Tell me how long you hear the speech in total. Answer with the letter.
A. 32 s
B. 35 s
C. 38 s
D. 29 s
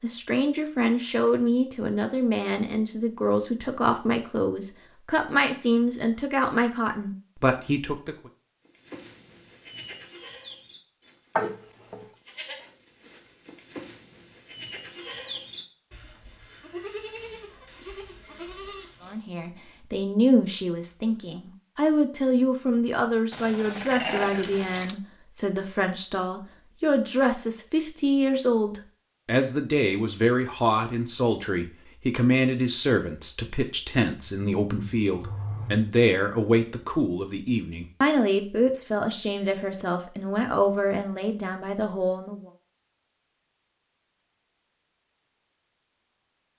A.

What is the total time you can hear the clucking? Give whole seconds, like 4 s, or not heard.
not heard.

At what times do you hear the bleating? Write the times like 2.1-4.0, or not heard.
8.7-19.2.